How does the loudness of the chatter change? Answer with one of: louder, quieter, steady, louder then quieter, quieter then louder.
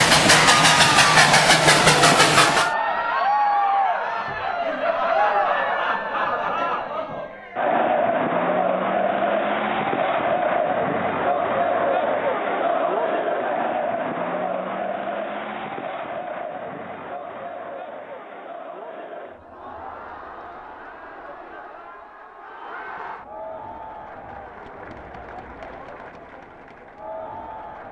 quieter.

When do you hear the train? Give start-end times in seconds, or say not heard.
0.0-2.7.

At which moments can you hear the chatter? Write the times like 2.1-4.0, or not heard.
0.1-27.8.